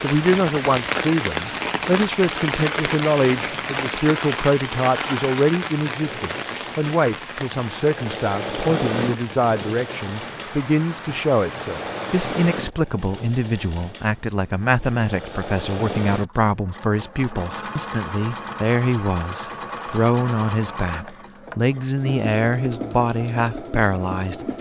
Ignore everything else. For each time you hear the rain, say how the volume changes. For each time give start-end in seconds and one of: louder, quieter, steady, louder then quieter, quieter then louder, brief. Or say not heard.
0.0-12.7 quieter.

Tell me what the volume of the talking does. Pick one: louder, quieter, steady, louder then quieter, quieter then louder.
steady.